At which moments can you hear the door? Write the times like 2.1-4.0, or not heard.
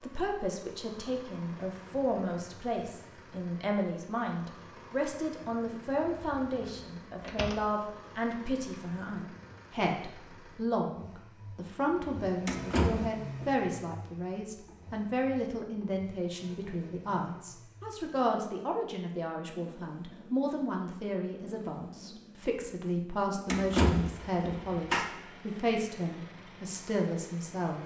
6.1-7.5, 12.4-13.4, 23.4-25.0.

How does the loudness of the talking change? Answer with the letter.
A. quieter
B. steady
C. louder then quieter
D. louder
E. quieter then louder
B.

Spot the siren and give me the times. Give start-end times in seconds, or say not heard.
not heard.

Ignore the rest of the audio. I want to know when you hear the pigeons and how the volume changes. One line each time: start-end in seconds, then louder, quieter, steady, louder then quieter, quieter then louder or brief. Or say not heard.
not heard.